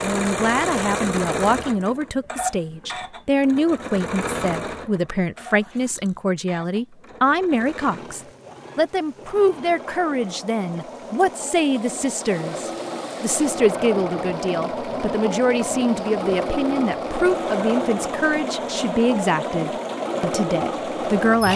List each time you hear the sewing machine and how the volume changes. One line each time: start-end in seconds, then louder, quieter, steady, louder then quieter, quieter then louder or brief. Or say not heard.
0.0-21.5 quieter then louder.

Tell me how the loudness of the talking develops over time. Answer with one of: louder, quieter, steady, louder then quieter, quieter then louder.
steady.